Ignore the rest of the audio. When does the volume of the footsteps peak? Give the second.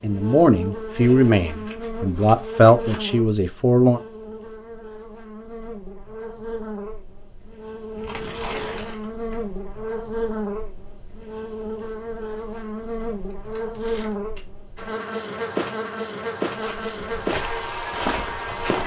18 s.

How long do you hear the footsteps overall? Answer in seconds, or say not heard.
2 s.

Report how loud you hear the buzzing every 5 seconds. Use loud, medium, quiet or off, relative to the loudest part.
medium, medium, loud, loud.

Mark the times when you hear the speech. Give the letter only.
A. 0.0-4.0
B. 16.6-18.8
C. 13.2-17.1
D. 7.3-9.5
A.